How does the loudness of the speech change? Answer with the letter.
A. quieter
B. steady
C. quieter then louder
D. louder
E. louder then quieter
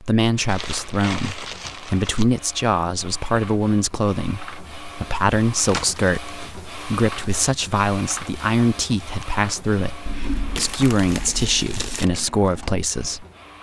B.